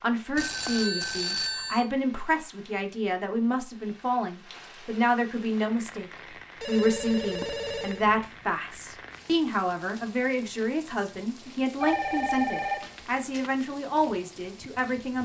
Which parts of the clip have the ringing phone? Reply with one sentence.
You can hear the ringing phone from 0.3 to 1.9 s, from 6.6 to 8.1 s and from 11.8 to 13.5 s.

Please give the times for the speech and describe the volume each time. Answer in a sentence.
The speech can be heard from 0.0 to 15.1 s, at a steady volume.